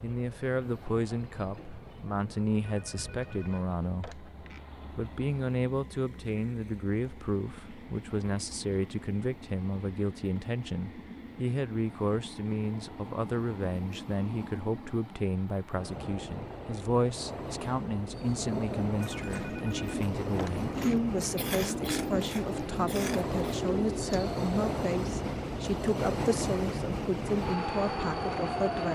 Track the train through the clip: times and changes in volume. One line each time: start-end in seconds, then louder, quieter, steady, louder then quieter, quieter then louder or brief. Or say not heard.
0.0-28.9 louder.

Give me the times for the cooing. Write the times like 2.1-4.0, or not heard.
18.2-24.4.